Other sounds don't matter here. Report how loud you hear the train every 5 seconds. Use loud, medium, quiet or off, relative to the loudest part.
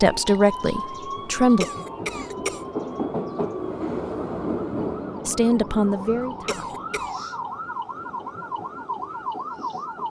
loud, medium.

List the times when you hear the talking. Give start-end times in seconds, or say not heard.
0.0-1.6, 5.2-6.8.